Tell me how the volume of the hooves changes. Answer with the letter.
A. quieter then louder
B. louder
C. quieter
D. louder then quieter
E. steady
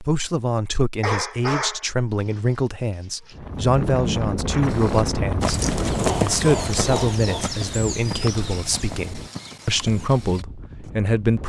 C.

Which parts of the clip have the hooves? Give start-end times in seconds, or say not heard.
4.6-10.9.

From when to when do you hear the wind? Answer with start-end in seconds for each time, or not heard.
3.3-11.4.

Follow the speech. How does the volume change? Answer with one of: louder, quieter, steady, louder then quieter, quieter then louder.
steady.